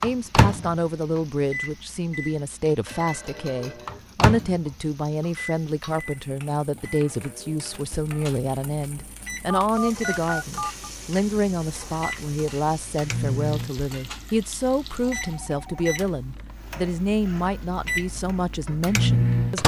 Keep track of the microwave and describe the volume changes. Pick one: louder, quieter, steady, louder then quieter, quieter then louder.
quieter then louder.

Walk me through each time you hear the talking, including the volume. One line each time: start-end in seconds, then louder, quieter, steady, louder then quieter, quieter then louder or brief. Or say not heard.
0.0-19.6 steady.